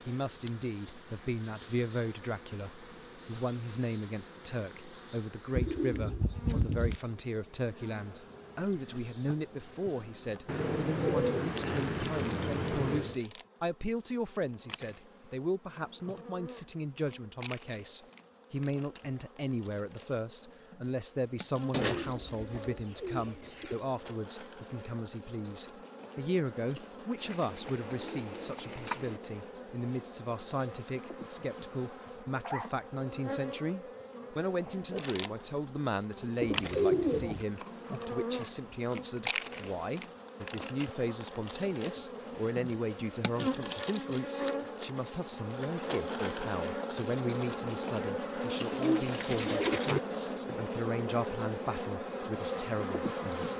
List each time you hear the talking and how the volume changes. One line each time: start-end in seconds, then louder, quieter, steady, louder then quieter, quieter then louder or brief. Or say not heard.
0.1-53.5 steady.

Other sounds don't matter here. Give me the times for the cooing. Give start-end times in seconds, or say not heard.
5.5-7.0, 10.4-13.2, 21.7-23.9, 27.2-29.2, 36.4-37.5, 48.7-50.0.